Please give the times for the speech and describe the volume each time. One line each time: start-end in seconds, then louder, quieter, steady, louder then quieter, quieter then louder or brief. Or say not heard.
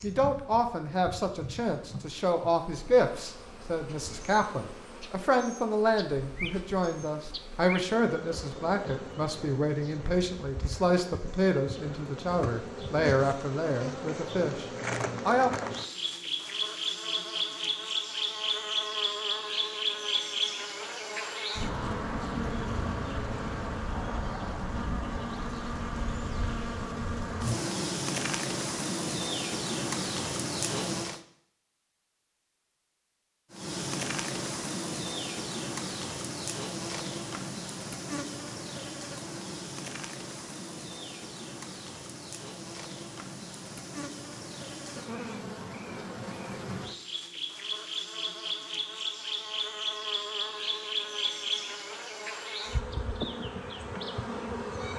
0.0-15.6 steady.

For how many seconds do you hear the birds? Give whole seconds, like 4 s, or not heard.
not heard.